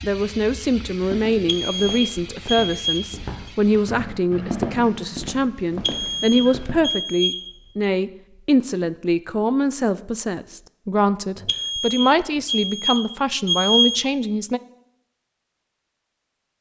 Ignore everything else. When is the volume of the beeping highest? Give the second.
14 s.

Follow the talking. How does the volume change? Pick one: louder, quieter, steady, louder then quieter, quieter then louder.
steady.